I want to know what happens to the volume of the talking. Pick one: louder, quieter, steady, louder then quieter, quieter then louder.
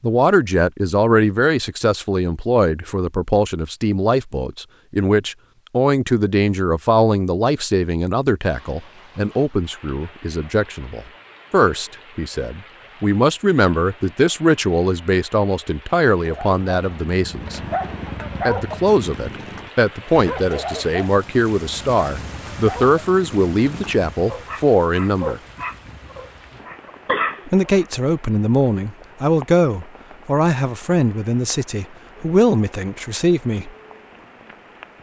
steady.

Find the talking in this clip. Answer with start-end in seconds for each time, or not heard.
0.0-17.6, 18.4-25.4, 27.4-33.7.